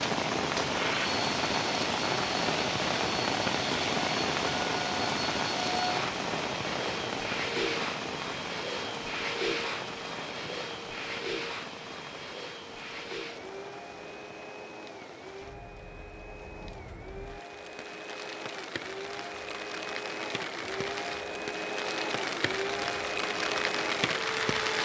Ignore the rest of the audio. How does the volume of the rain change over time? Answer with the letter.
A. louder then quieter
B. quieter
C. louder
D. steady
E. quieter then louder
E.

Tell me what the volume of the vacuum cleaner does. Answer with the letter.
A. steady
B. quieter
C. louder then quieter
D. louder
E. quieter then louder
E.